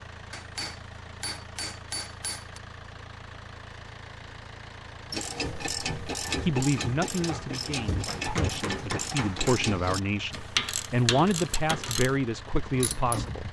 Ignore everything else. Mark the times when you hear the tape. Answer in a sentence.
The tape can't be heard in this clip.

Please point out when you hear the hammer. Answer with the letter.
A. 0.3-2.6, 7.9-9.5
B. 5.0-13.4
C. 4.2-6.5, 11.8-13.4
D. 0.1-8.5
A.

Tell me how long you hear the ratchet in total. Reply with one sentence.
You can hear the ratchet for 8 seconds altogether.